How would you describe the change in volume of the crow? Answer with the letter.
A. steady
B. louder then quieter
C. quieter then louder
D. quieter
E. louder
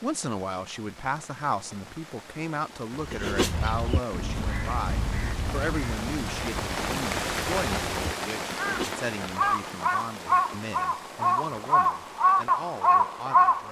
E.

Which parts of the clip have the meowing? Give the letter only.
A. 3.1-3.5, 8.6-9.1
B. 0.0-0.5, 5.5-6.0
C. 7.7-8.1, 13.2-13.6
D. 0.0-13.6
A.